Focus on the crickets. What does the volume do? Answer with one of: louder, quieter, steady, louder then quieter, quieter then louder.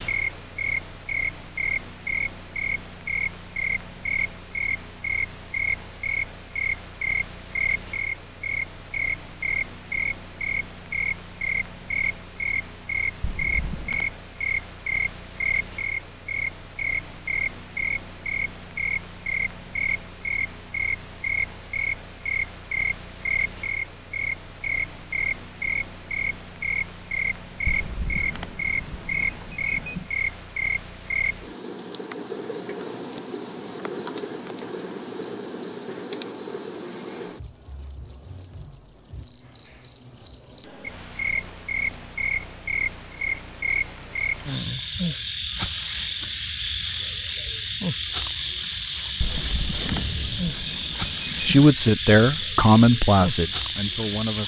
steady.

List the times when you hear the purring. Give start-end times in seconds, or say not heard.
not heard.